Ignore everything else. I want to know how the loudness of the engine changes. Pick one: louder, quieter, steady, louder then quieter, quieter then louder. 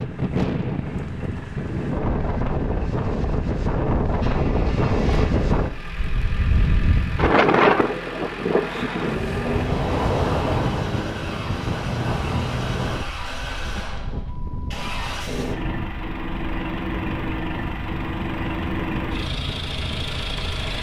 louder.